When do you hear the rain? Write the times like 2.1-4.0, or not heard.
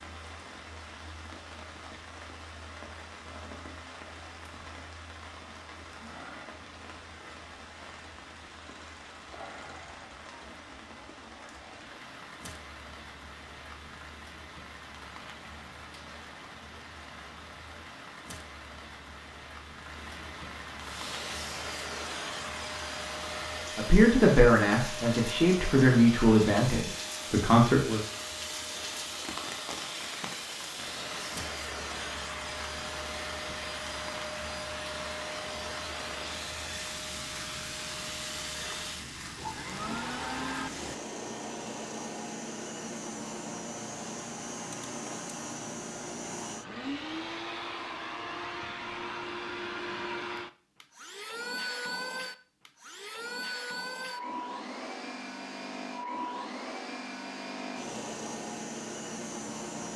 0.0-41.0.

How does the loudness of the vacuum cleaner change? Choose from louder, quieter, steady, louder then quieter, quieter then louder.
steady.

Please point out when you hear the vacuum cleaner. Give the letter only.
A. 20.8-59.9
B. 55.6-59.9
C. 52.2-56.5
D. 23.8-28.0
A.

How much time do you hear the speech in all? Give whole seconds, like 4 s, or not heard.
4 s.